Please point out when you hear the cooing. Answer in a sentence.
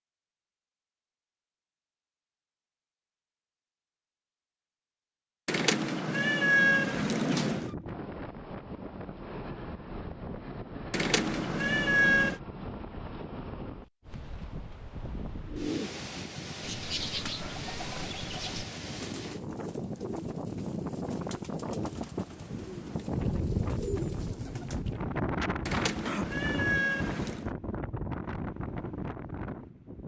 The cooing can be heard from 15.4 to 24.9 s.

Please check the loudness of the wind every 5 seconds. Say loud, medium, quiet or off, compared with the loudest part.
off, medium, medium, medium, loud, loud.